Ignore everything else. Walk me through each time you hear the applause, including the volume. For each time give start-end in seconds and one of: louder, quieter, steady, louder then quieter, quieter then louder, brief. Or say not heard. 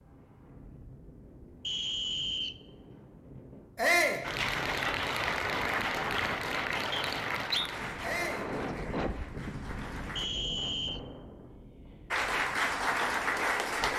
4.2-10.3 quieter
12.1-13.9 brief.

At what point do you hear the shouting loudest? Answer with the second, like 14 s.
4 s.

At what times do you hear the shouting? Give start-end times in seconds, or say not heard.
3.8-4.2, 8.0-8.5.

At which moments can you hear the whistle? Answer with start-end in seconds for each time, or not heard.
1.6-2.5, 6.9-7.7, 10.2-11.0.